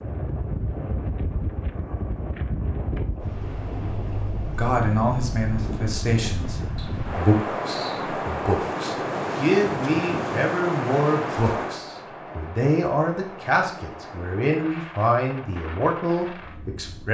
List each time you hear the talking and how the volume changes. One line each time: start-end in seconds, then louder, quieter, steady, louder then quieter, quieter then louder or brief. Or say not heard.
4.5-17.0 steady.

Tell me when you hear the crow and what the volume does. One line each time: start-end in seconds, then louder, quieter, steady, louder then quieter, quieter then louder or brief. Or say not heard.
not heard.